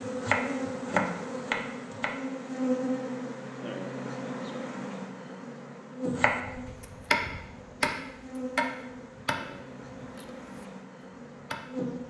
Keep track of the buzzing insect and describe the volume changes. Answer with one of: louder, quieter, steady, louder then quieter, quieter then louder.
quieter.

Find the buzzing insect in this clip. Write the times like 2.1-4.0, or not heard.
0.0-12.0.